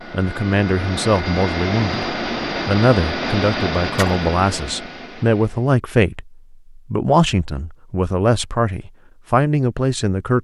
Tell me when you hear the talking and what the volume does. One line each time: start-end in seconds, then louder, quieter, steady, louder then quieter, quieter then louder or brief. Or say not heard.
0.1-10.3 steady.